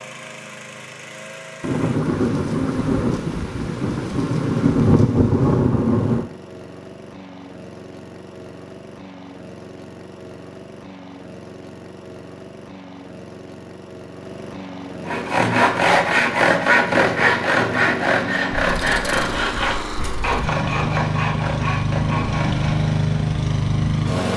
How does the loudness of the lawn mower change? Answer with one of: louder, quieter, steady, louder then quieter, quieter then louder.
louder.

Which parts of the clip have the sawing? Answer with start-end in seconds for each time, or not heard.
15.1-22.8.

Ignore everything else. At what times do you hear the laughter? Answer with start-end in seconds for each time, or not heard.
not heard.